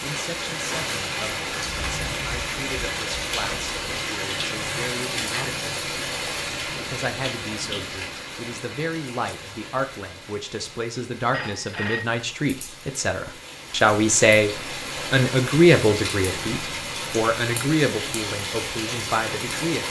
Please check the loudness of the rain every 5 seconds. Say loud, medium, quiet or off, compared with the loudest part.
loud, loud, medium, loud.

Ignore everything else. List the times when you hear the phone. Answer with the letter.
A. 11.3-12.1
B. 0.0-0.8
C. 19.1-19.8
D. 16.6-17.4
A.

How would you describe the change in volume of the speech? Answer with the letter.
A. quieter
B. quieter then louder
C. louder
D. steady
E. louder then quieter
E.